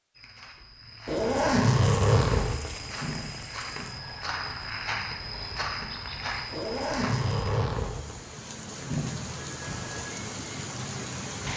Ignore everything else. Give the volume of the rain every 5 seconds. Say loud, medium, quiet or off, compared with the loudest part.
medium, medium, loud.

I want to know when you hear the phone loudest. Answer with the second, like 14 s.
9 s.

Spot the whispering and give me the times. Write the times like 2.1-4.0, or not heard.
not heard.